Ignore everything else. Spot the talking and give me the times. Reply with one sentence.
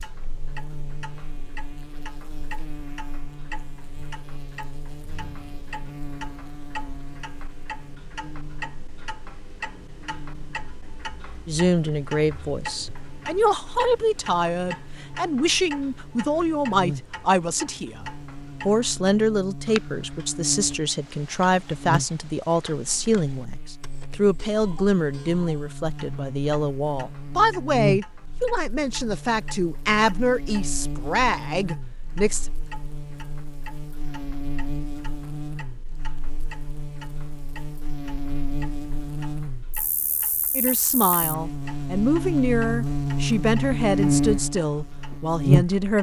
The talking can be heard from 11.4 to 32.5 s and from 40.5 to 45.9 s.